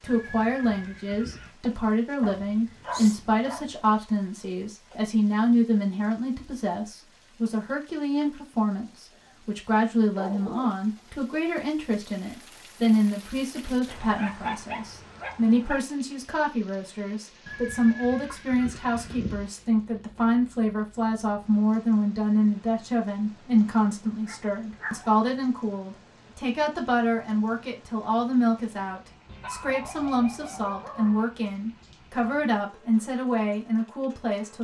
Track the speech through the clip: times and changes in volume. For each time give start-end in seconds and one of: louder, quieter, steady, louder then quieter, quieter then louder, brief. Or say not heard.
0.0-34.6 steady.